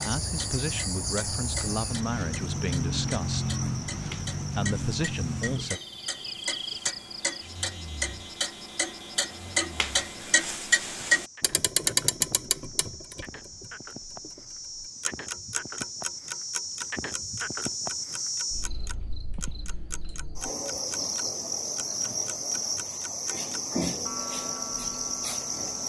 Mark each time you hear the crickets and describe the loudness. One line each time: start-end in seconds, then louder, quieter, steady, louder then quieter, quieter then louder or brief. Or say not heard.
0.0-25.8 quieter then louder.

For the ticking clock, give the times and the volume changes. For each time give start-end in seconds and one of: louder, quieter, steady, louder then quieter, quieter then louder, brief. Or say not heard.
0.2-25.8 louder then quieter.